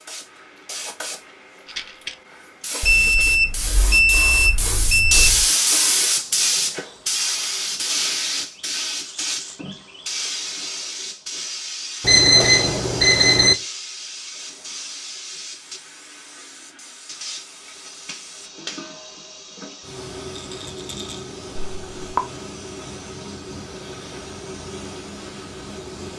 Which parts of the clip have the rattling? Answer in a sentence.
You can hear the rattling from 1.6 to 2.1 s, from 9.0 to 9.6 s and from 20.4 to 21.2 s.